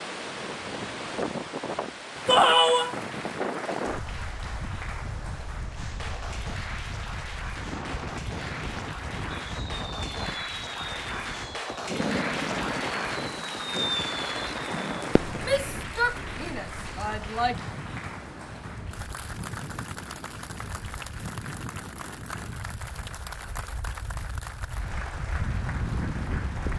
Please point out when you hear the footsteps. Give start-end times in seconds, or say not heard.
not heard.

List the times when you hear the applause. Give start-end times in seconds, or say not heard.
2.1-26.7.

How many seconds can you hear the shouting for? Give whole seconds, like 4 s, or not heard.
3 s.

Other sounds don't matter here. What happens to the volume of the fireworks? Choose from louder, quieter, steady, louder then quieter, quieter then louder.
louder.